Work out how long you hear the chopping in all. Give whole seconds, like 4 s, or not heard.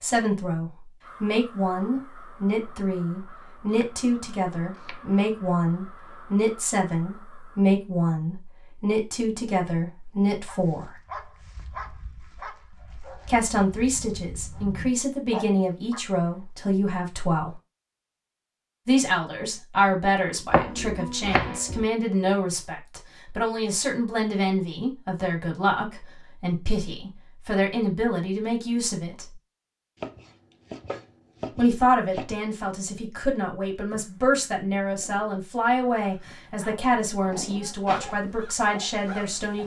5 s.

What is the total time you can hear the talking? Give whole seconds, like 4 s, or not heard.
34 s.